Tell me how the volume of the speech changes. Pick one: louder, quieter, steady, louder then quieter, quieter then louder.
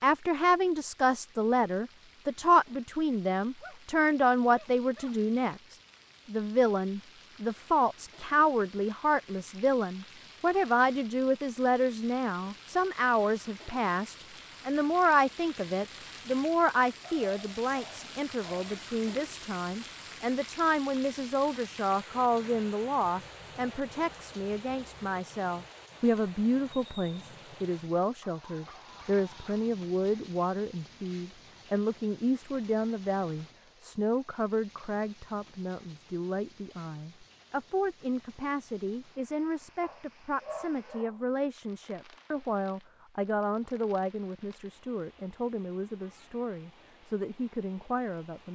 quieter.